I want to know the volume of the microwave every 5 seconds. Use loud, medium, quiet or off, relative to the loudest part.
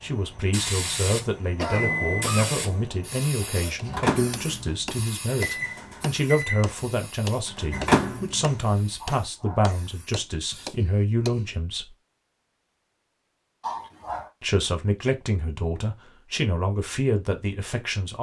loud, loud, off, off.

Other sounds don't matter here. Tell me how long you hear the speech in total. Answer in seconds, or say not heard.
16 s.